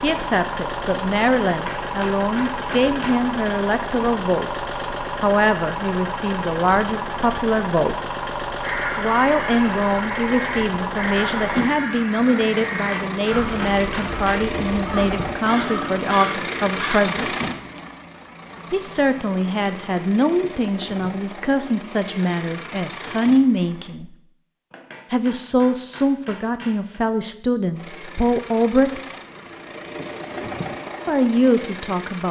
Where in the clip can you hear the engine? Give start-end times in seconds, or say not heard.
0.0-23.9, 27.7-32.2.